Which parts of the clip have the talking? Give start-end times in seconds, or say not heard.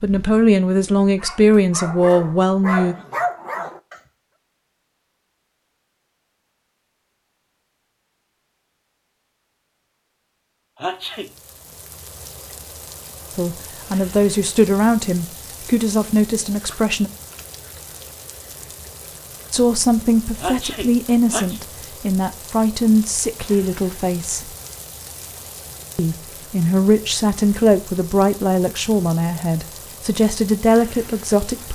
0.0-3.0, 13.3-17.1, 19.5-24.5, 25.9-31.7.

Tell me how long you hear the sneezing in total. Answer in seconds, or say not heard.
2 s.